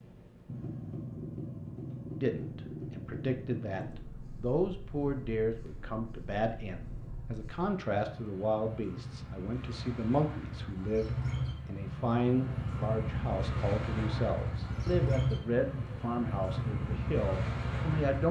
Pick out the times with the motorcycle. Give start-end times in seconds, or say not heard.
0.0-18.2.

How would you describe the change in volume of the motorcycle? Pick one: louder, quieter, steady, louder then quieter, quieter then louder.
quieter then louder.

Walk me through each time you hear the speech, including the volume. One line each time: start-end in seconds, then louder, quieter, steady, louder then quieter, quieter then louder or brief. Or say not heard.
2.1-18.2 steady.